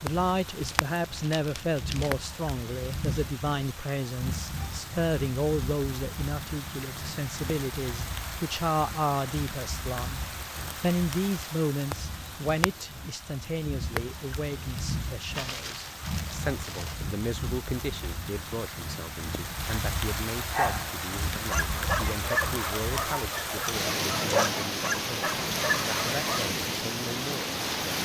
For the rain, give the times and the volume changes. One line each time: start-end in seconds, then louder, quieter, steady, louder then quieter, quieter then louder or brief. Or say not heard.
0.0-27.9 louder.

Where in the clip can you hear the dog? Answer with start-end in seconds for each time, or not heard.
20.5-26.5.